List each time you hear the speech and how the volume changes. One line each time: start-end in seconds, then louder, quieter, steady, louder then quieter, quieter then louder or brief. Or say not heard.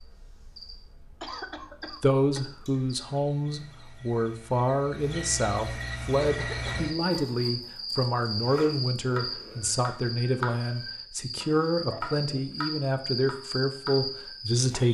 2.0-14.8 steady.